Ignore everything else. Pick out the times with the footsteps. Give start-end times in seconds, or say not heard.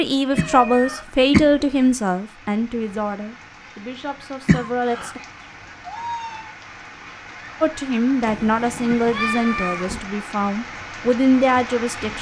not heard.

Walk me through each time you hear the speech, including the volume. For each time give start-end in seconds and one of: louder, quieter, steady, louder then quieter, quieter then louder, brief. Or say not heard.
0.0-5.2 quieter
7.6-12.1 quieter then louder.